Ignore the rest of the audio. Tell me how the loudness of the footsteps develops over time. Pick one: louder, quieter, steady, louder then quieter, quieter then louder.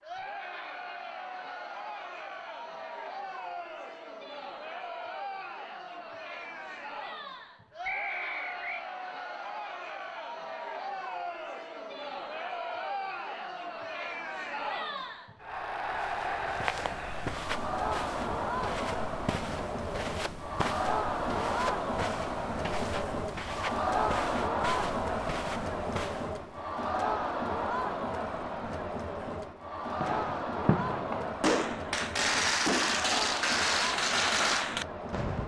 steady.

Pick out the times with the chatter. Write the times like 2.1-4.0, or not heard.
0.0-35.4.